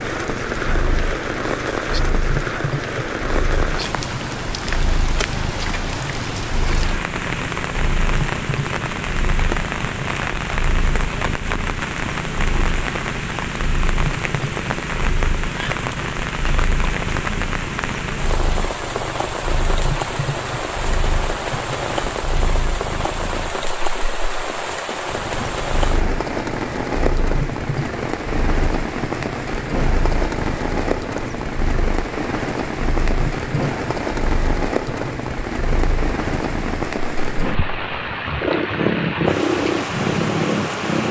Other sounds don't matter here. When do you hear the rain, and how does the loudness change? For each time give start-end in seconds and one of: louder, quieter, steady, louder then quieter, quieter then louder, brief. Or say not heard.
0.0-41.0 steady.